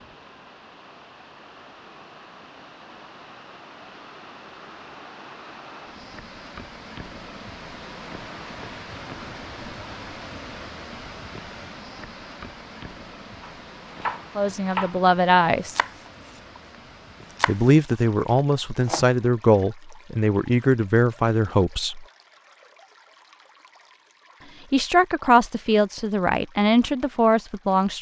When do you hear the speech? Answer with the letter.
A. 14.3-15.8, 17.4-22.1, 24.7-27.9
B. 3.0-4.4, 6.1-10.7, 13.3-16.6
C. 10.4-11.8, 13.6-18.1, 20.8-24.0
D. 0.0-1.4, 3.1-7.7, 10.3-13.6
A.